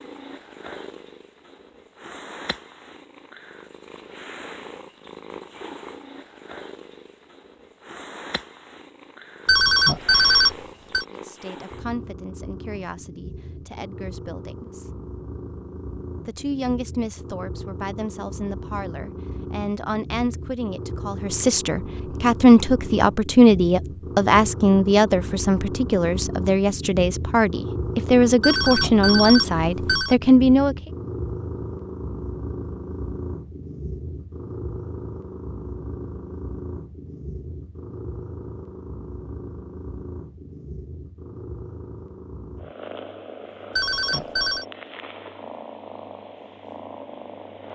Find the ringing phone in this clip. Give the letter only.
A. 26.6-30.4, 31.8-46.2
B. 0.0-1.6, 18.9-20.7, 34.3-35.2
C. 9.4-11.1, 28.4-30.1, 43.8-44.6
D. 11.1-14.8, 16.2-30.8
C.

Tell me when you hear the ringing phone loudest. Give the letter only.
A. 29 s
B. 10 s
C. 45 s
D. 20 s
B.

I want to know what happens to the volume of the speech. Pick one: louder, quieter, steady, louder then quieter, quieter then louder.
louder.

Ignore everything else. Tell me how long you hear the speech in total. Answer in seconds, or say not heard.
18 s.